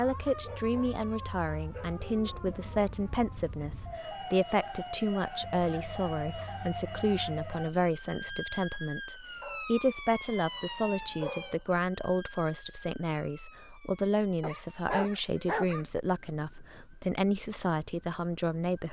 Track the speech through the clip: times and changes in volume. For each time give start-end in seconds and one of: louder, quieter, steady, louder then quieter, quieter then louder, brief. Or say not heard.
0.0-18.8 steady.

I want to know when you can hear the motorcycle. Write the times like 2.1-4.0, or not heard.
not heard.